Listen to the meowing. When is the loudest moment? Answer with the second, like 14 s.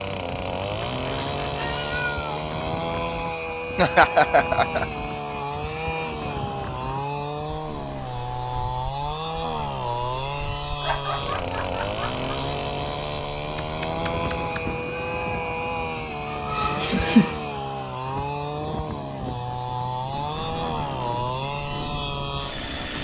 2 s.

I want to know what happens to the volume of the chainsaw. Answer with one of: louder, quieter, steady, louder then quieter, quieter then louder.
steady.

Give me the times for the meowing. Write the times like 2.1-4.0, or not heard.
1.6-2.5, 13.6-15.4.